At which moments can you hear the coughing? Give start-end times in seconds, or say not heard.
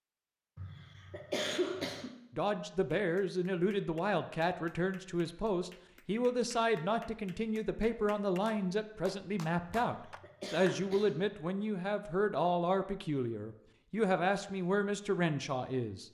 0.6-2.1, 9.8-11.3.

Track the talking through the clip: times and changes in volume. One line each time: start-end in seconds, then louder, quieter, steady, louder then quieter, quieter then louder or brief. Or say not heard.
2.3-16.0 steady.